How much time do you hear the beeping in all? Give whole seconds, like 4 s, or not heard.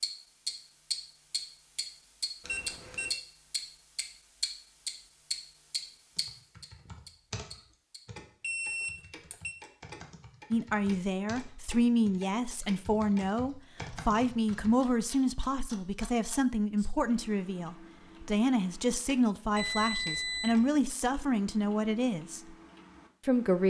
3 s.